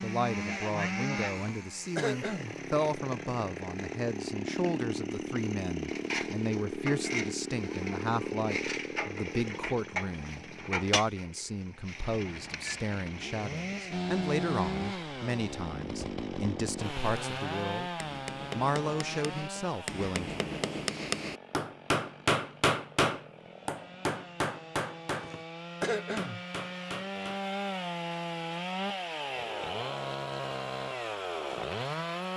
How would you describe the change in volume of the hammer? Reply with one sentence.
The volume of the hammer goes up, then down.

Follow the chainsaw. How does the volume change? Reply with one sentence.
The volume of the chainsaw goes down, then up.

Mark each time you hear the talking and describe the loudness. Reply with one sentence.
The talking can be heard from 0.0 to 17.9 s, at a steady volume; and briefly from 18.5 to 20.4 s.